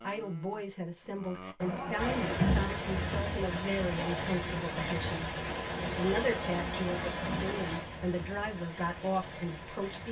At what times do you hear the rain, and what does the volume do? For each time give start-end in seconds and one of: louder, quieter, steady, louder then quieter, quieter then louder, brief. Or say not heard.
1.9-10.0 quieter.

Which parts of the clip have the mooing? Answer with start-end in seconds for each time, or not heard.
0.0-2.5.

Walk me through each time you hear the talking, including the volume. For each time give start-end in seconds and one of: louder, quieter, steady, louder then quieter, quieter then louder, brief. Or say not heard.
0.0-10.0 steady.